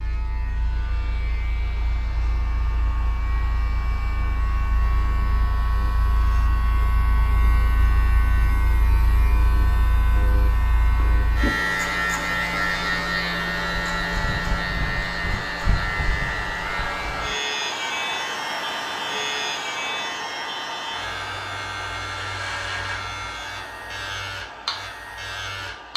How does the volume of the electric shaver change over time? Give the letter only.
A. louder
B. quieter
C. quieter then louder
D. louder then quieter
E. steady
D.